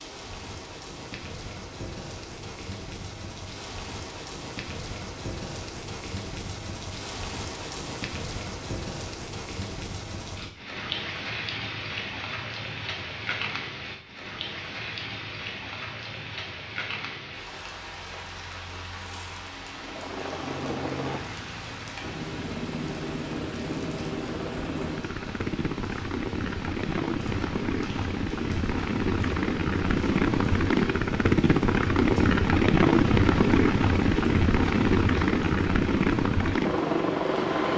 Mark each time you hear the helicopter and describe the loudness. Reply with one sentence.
The helicopter can be heard from 19.7 to 37.7 s, getting louder.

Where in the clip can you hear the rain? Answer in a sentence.
The rain can be heard from 0.0 to 37.6 s.